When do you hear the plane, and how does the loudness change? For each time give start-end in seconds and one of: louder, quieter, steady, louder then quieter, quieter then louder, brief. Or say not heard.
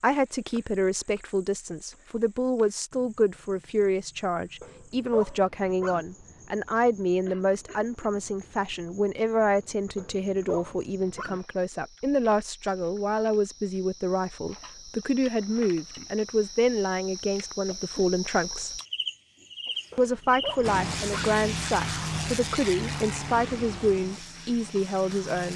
20.6-25.5 quieter.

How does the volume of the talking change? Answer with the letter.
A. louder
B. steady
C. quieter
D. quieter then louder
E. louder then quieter
B.